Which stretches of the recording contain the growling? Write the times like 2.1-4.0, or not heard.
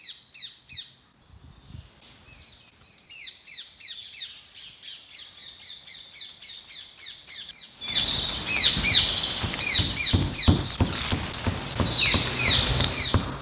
not heard.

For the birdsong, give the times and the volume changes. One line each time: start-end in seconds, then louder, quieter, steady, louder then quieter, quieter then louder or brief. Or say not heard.
0.0-13.3 louder.